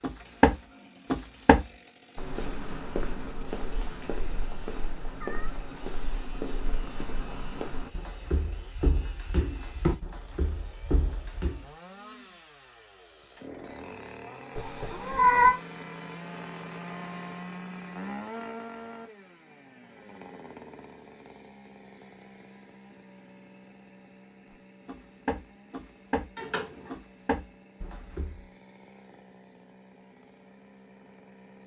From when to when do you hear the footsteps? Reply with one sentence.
The footsteps can be heard from 0.0 to 11.7 s and from 24.5 to 28.4 s.